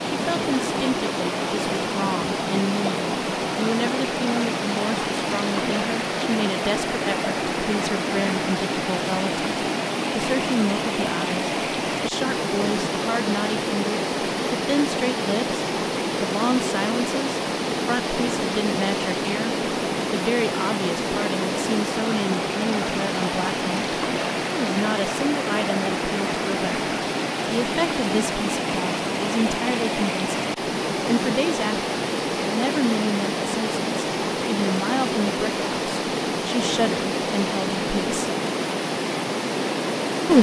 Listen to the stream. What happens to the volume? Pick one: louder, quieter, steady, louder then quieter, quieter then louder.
steady.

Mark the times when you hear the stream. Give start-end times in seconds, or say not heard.
0.0-40.3.